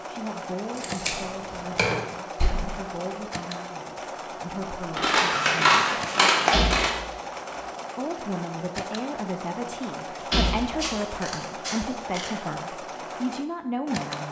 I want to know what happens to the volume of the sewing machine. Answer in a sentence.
The volume of the sewing machine stays about the same.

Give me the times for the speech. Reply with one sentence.
You can hear the speech from 0.1 to 5.9 s and from 8.0 to 14.2 s.